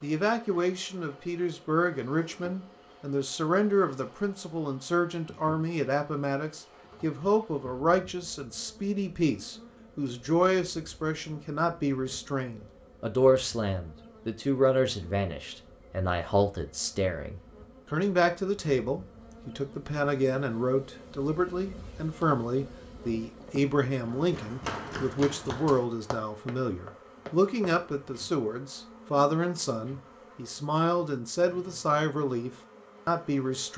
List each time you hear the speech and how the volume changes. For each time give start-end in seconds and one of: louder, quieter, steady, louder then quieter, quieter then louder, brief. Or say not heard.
0.0-33.7 steady.